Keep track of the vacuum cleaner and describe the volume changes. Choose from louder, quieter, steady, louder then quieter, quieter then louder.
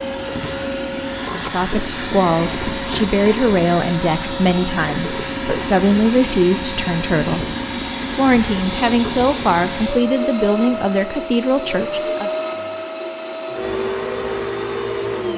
steady.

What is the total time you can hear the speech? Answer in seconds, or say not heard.
10 s.